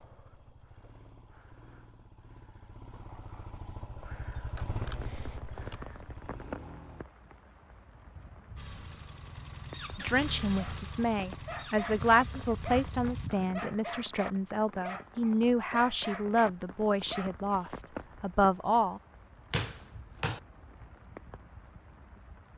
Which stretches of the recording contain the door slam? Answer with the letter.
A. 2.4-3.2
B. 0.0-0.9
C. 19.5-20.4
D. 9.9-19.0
C.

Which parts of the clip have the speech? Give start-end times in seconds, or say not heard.
9.9-19.0.